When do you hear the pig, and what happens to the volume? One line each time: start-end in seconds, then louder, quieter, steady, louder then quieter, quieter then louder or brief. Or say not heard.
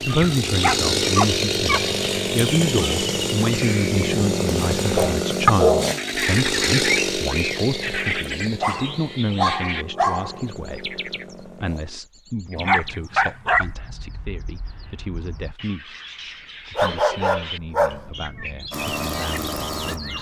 not heard.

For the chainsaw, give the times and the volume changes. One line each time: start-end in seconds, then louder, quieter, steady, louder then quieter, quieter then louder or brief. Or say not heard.
0.0-12.0 quieter
18.7-20.1 brief.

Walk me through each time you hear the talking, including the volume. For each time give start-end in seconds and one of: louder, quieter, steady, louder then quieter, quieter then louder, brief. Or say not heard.
0.0-20.1 quieter.